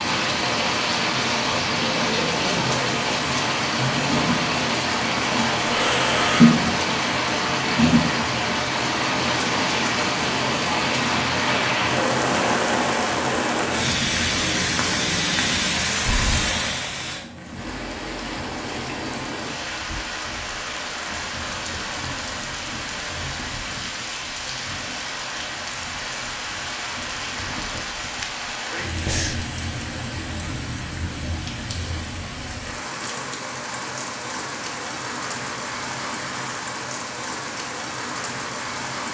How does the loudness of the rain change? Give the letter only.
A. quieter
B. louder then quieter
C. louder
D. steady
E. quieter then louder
A.